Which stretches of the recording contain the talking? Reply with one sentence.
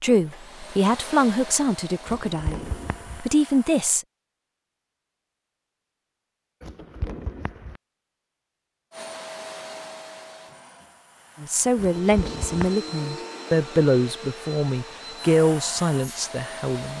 The talking can be heard from 0.0 to 4.0 s and from 11.4 to 16.9 s.